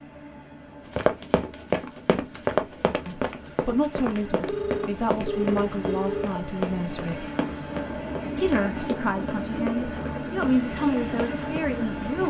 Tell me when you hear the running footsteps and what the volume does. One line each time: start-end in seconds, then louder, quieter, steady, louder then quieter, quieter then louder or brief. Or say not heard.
0.9-11.6 quieter.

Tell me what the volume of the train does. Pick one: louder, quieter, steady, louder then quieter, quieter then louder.
louder.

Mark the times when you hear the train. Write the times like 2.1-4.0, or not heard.
0.0-12.2.